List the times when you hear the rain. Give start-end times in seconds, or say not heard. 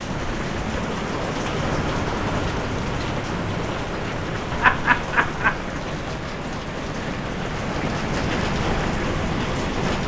0.0-10.0.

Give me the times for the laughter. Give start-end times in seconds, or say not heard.
4.5-5.8.